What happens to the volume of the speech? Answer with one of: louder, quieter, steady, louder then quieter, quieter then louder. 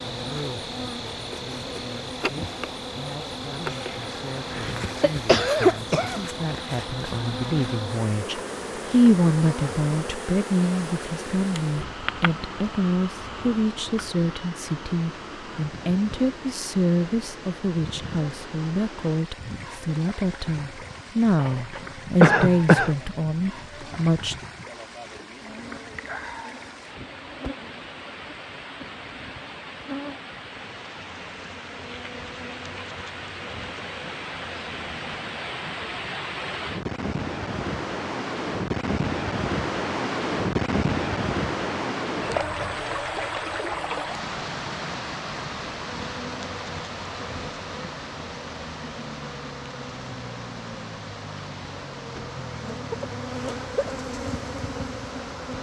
louder.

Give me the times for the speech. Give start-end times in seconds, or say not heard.
0.1-24.4.